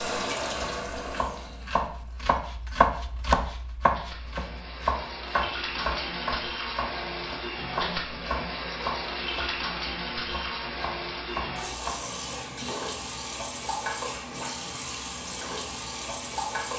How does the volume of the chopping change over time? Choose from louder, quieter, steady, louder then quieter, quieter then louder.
quieter.